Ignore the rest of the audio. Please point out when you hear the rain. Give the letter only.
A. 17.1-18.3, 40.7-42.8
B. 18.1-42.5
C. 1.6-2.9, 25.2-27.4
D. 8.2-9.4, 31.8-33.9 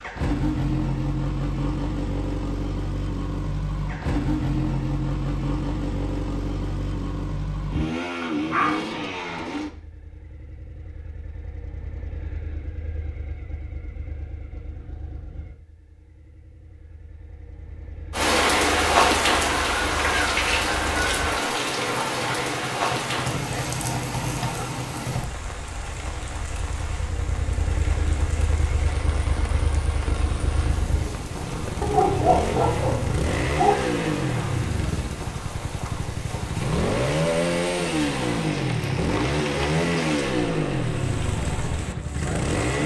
B.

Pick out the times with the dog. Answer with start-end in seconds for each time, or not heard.
8.2-9.4, 31.8-33.9.